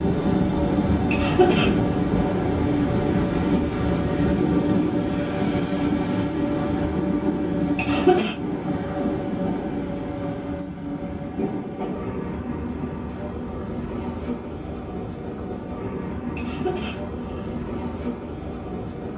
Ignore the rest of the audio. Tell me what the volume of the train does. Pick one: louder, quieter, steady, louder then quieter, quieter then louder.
quieter.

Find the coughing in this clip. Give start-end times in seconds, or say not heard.
1.1-1.8, 7.8-8.3, 16.4-17.0.